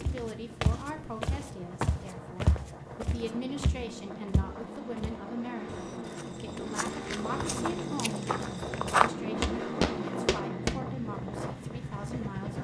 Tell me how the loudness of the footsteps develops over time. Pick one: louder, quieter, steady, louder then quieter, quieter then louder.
quieter then louder.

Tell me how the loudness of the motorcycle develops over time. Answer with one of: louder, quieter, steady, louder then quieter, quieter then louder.
louder.